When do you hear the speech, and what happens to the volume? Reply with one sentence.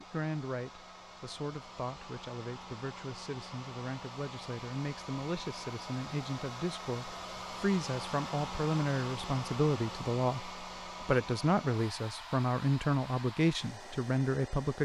You can hear the speech from 0.0 to 14.7 s, getting louder.